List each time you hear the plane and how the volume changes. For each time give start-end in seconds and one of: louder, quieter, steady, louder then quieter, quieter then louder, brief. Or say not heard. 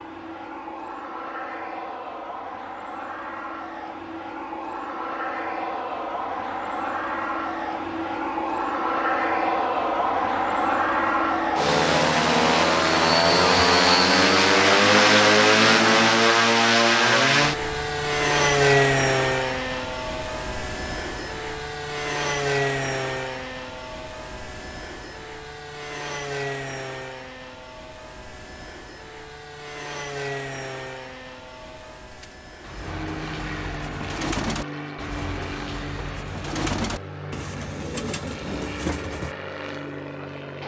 0.0-40.6 louder then quieter.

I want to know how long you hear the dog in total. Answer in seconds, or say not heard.
not heard.